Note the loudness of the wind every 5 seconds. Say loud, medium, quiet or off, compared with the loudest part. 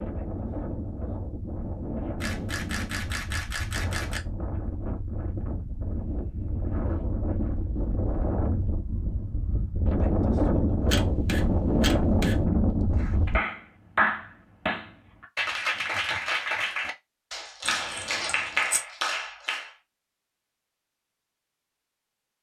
medium, medium, loud, off, off.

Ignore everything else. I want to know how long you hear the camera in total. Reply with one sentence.
The camera can be heard for 5 seconds in total.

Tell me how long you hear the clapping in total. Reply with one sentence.
You can hear the clapping for 7 seconds altogether.